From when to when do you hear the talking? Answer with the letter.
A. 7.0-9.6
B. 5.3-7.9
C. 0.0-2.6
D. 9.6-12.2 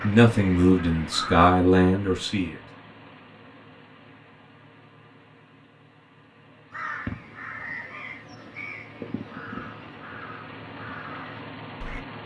C.